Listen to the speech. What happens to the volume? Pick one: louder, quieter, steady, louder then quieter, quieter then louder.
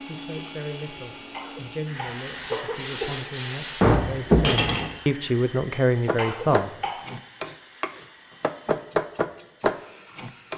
louder.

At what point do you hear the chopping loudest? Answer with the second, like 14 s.
9 s.